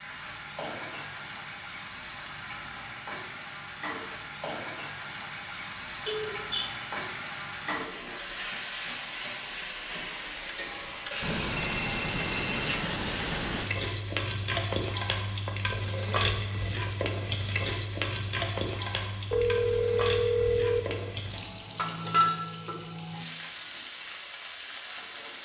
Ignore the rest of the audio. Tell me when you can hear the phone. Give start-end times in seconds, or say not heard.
6.0-6.7, 11.2-13.7, 19.3-20.8.